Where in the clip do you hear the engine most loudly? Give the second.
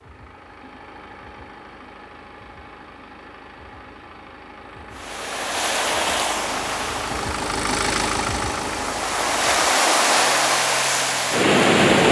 8 s.